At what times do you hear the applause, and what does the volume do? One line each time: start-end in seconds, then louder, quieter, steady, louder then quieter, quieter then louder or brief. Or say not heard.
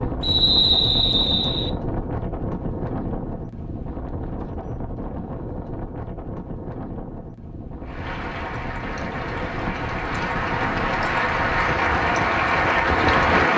7.8-13.5 louder.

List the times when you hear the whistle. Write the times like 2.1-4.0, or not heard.
0.2-1.7.